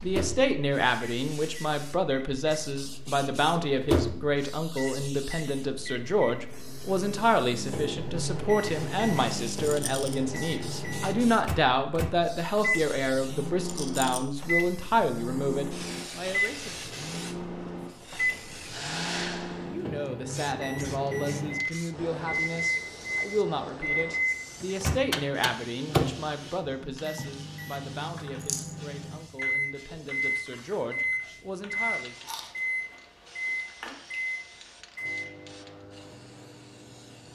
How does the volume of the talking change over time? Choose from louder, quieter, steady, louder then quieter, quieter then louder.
quieter.